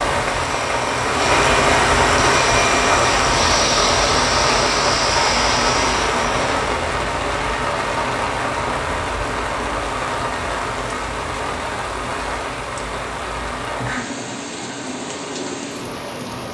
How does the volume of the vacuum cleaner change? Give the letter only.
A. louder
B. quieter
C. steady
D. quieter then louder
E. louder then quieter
C.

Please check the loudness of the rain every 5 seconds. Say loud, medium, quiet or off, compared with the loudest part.
loud, loud, medium, medium.